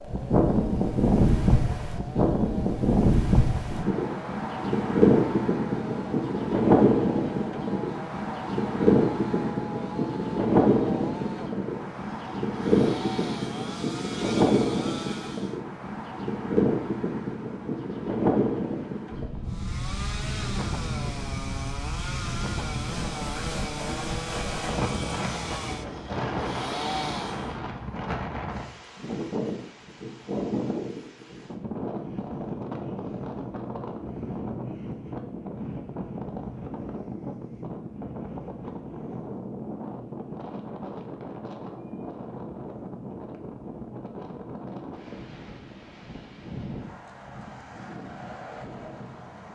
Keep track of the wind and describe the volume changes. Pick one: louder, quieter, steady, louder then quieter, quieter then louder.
quieter.